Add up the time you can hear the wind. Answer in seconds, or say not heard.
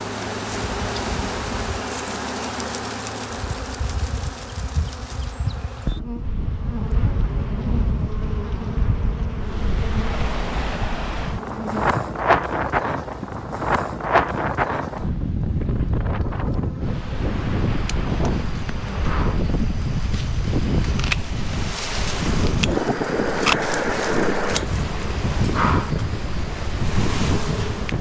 22 s.